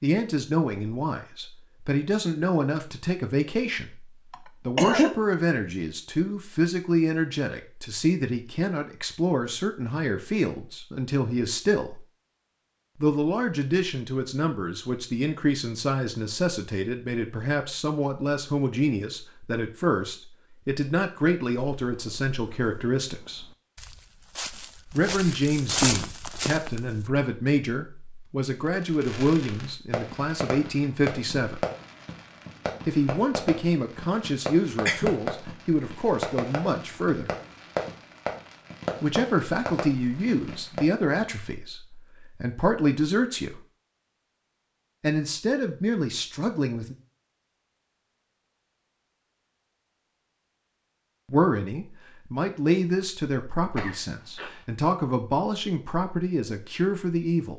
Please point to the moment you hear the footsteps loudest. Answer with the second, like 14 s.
26 s.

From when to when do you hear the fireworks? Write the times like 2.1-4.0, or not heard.
28.6-40.9.